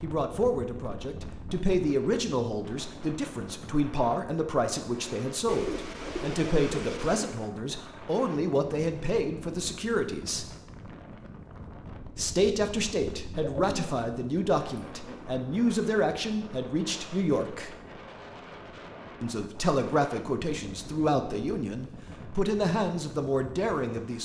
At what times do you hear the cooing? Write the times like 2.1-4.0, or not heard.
5.5-7.2, 13.4-15.2.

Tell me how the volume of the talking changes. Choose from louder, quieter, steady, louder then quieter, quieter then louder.
steady.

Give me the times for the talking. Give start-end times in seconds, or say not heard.
0.0-10.4, 12.2-17.7, 19.2-24.2.